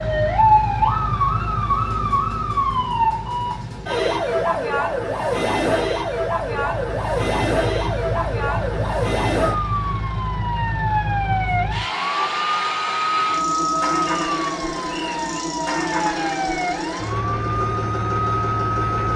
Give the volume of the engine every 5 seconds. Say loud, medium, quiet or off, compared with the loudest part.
medium, medium, loud, loud.